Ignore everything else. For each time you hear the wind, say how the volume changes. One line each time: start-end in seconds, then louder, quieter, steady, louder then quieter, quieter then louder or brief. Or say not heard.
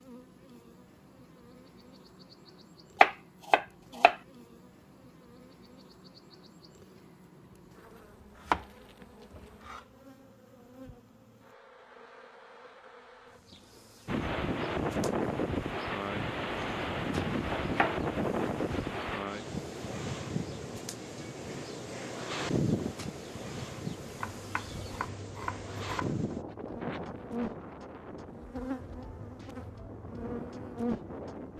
14.1-31.5 quieter.